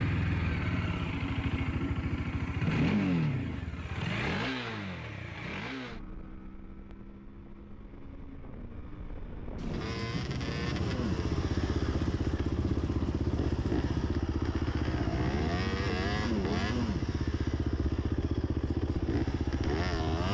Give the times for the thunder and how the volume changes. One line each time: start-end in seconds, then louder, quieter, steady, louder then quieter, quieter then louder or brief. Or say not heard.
9.6-14.2 steady.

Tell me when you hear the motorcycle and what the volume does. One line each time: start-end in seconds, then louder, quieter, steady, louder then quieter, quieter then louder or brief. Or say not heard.
0.0-20.3 quieter then louder.